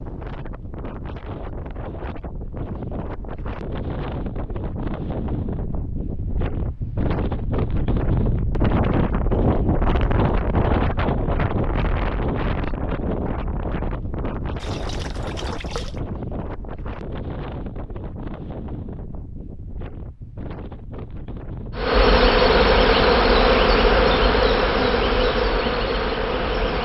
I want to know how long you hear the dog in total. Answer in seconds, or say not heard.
not heard.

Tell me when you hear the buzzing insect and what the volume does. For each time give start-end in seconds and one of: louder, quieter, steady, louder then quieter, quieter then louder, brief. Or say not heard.
21.8-26.8 quieter.